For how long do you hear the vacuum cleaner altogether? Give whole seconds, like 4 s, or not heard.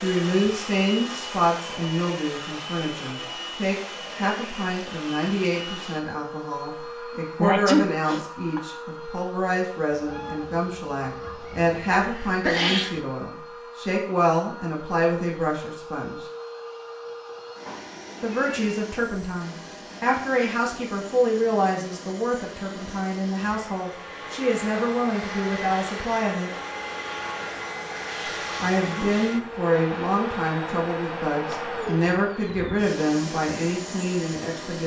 35 s.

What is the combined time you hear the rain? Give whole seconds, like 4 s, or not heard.
not heard.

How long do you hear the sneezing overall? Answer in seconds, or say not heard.
3 s.